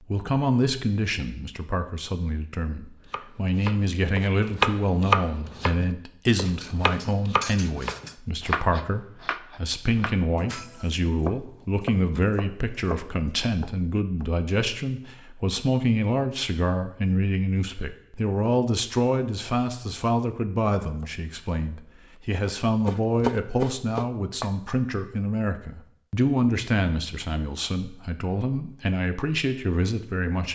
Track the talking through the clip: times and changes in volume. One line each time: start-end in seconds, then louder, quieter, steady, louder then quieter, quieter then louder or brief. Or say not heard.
0.0-30.5 steady.